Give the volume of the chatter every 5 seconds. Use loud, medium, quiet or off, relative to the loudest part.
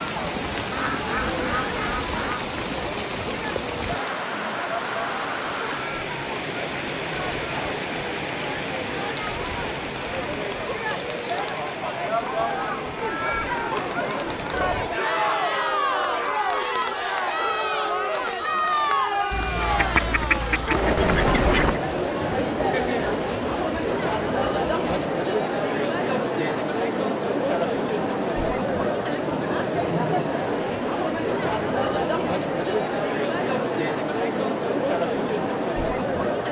medium, medium, loud, loud, loud, loud, loud, loud.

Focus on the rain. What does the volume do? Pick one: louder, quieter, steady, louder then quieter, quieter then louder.
quieter.